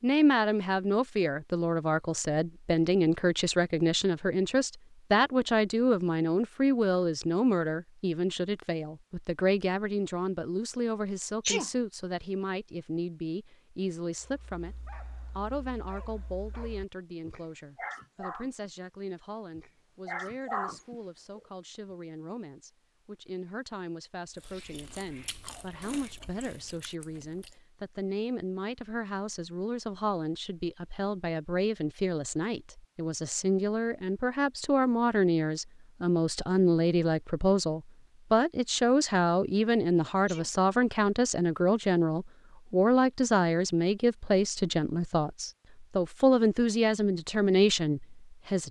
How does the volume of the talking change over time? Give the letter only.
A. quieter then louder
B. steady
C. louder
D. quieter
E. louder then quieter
A.